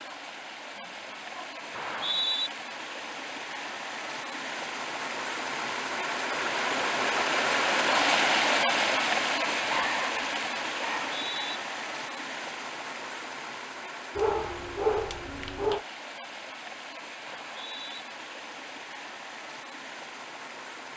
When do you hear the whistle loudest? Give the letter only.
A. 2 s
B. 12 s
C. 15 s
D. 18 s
A.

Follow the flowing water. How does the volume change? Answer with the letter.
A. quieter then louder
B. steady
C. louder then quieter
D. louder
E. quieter
C.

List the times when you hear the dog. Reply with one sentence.
The dog can be heard from 0.8 to 2.2 s, from 9.6 to 11.1 s and from 14.2 to 15.8 s.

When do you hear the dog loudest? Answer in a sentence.
The loudest moment of the dog is at 15 seconds.